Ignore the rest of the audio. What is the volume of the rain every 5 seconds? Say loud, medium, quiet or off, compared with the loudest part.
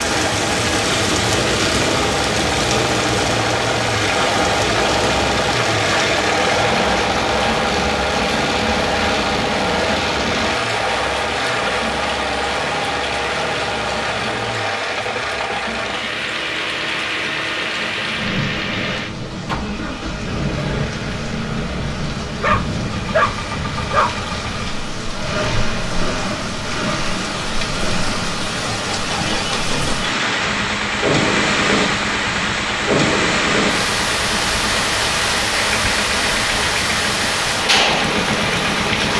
loud, medium, medium, medium, medium, medium, loud, loud.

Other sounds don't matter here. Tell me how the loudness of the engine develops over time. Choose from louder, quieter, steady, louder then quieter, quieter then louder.
quieter.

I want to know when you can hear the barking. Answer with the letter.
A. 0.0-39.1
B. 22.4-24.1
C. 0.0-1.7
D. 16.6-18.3
B.